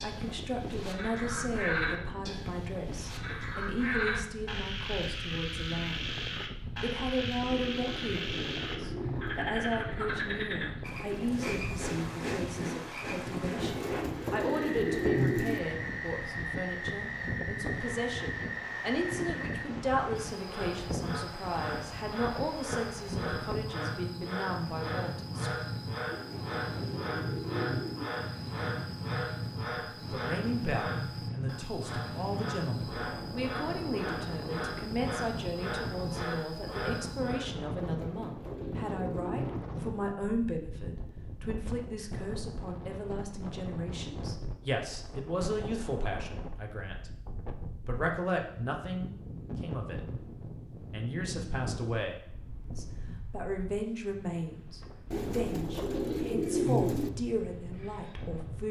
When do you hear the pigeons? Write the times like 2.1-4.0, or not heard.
7.5-9.5, 13.6-15.6, 26.1-28.1, 37.8-39.6, 55.1-57.1.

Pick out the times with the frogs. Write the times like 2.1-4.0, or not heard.
0.0-37.5.